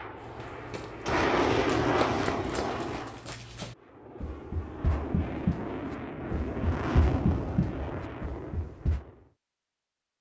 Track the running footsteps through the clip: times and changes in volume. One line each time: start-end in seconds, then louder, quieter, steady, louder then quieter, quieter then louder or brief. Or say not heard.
0.2-9.1 louder.